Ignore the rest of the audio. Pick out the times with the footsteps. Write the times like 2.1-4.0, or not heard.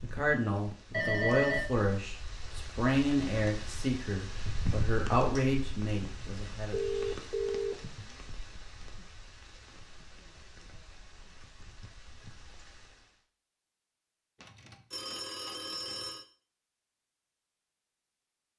not heard.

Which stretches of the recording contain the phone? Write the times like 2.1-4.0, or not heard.
0.9-1.7, 6.7-7.8, 14.4-16.2.